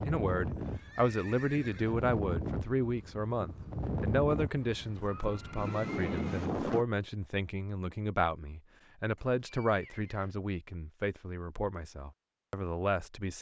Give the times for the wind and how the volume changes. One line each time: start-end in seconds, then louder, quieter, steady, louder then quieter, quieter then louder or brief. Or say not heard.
0.0-6.8 steady.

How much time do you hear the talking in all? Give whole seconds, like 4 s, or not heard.
13 s.